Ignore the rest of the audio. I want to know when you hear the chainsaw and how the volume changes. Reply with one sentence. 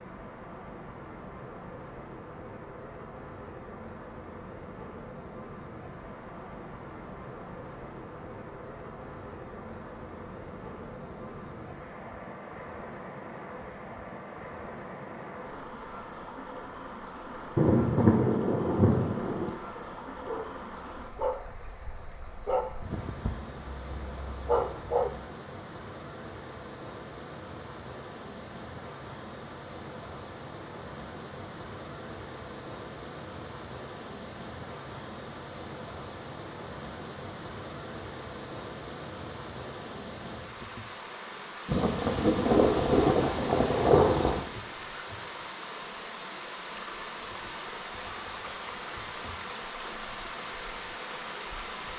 You can't hear the chainsaw here.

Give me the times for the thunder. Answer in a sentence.
The thunder can be heard from 17.6 to 19.5 s and from 41.6 to 44.4 s.